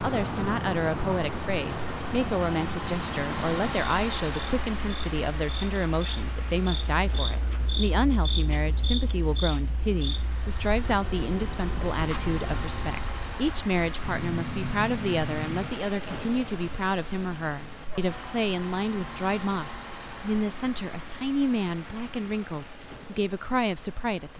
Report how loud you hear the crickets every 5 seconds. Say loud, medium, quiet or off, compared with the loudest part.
loud, medium, medium, loud, off.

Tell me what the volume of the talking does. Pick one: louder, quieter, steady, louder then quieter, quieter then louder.
steady.